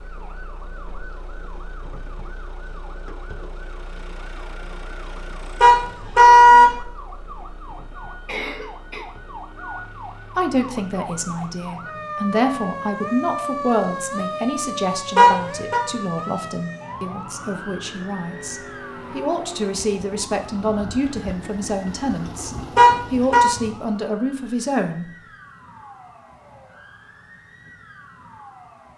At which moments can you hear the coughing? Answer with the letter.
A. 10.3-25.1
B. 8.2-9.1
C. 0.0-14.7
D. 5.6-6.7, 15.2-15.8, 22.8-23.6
B.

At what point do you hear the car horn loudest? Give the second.
6 s.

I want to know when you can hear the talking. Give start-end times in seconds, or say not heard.
10.3-25.1.